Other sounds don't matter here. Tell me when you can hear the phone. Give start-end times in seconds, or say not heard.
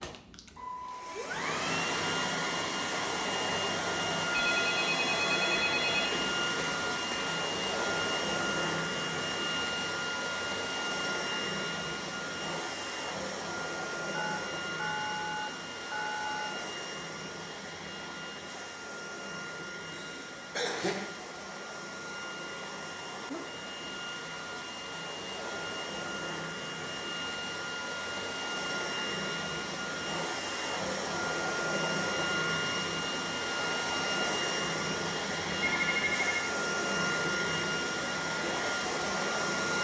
4.3-6.1, 14.1-16.6, 35.6-36.5.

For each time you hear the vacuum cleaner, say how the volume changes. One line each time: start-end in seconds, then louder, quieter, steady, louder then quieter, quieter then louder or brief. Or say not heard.
0.0-39.7 quieter then louder.